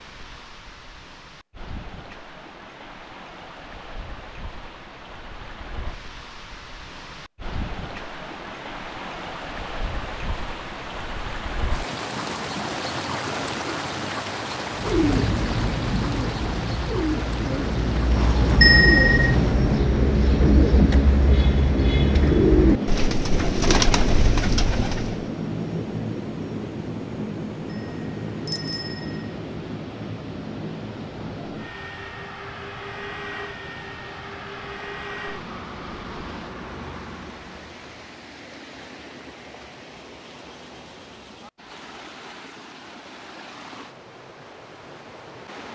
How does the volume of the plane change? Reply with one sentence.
The volume of the plane goes down.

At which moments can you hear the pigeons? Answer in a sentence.
You can hear the pigeons from 14.7 to 25.2 s.